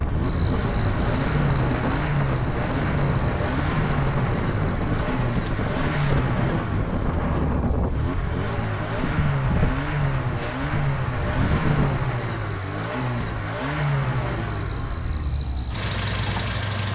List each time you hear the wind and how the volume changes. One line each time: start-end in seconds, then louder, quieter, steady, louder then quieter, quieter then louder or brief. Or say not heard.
0.0-12.2 steady.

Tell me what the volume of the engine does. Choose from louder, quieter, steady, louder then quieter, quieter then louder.
steady.